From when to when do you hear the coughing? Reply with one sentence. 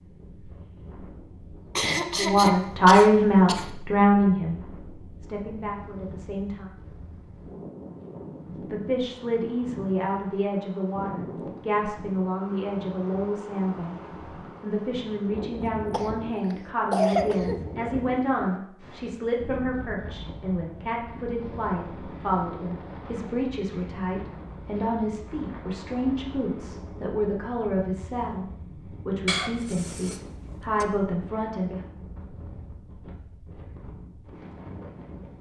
The coughing can be heard from 1.8 to 3.7 s, from 15.6 to 17.6 s and from 29.2 to 30.9 s.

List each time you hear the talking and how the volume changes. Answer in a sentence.
The talking can be heard briefly from 2.1 to 4.6 s; briefly from 5.2 to 6.7 s; from 8.7 to 13.9 s, at a steady volume; and from 14.6 to 31.9 s, at a steady volume.